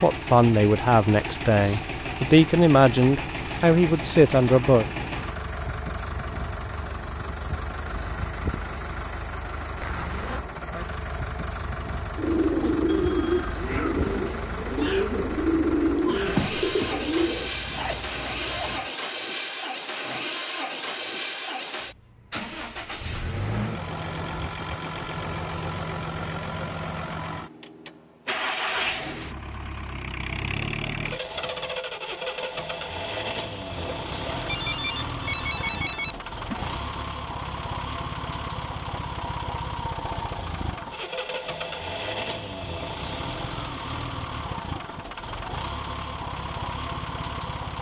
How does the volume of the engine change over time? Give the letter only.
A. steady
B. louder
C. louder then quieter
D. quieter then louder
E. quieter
A.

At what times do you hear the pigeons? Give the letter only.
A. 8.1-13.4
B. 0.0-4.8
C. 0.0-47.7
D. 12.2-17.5
D.